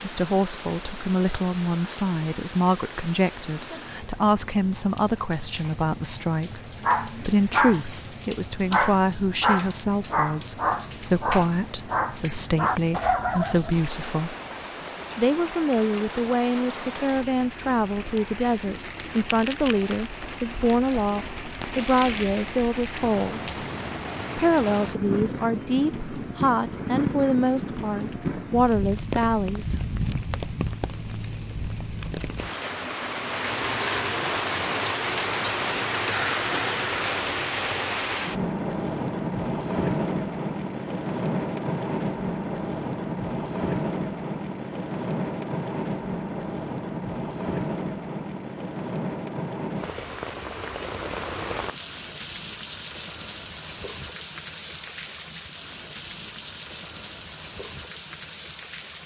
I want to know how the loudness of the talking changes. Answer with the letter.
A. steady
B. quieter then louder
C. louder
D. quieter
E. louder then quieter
A.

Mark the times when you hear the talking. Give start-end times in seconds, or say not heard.
0.0-14.3, 15.2-23.6, 24.4-29.8.